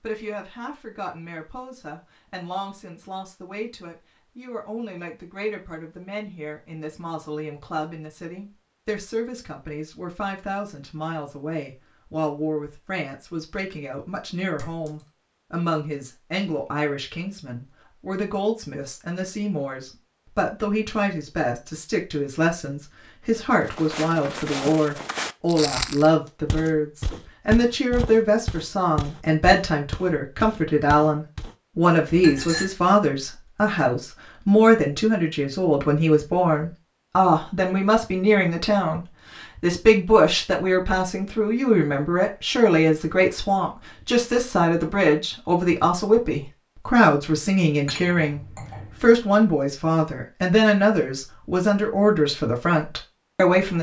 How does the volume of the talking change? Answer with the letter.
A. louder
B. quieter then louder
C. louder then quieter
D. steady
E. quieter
A.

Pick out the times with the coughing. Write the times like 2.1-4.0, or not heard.
not heard.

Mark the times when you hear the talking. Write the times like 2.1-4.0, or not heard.
0.0-53.7.